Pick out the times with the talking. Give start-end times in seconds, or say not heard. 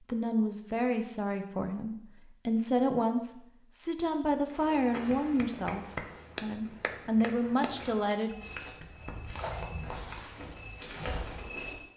0.1-8.3.